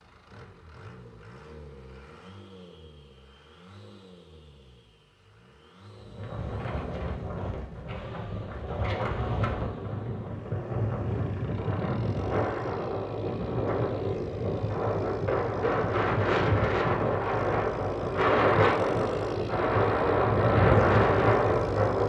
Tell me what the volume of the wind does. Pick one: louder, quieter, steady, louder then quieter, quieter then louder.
louder.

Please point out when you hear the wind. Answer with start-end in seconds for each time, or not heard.
6.0-22.0.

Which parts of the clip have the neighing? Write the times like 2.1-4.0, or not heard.
not heard.